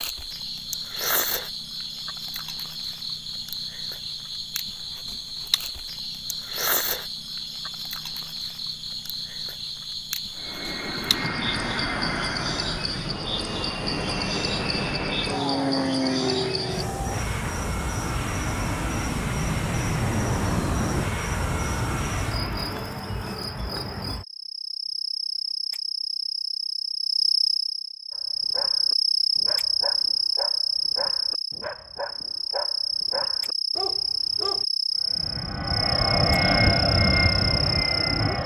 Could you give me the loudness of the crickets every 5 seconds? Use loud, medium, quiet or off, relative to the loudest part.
medium, medium, medium, medium, medium, loud, loud, loud.